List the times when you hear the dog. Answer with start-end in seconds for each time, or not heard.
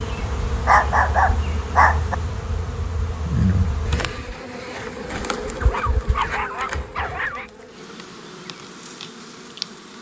0.7-2.1, 5.6-7.5.